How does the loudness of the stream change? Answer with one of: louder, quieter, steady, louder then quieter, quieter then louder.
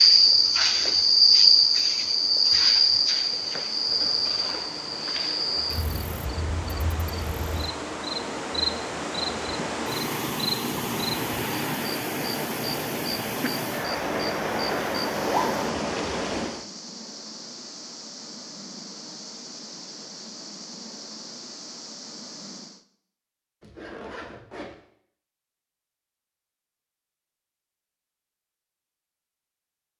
louder.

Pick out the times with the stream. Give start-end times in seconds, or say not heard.
0.0-16.6.